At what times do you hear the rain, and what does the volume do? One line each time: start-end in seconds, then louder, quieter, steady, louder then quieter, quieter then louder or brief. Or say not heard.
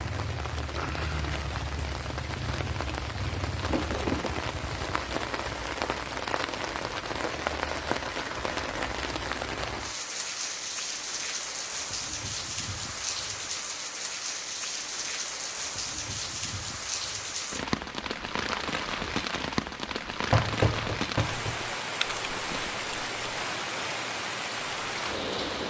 0.0-25.6 steady.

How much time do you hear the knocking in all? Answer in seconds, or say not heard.
2 s.